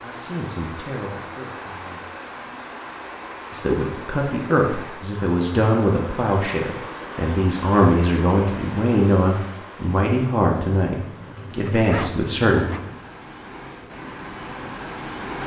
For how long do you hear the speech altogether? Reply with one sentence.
You can hear the speech for 11 seconds altogether.